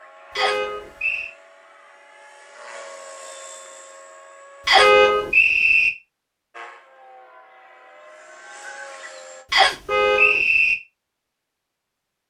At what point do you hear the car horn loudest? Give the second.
5 s.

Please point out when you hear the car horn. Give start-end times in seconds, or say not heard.
0.3-0.9, 4.8-5.3, 9.8-10.4.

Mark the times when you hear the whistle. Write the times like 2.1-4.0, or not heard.
0.3-1.3, 4.7-5.9, 9.5-10.8.